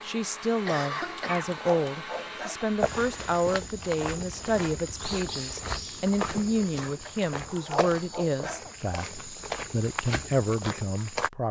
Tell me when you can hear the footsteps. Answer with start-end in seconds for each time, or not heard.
2.8-11.3.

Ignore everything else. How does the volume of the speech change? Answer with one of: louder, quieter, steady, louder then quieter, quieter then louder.
steady.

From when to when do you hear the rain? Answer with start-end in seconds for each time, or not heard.
not heard.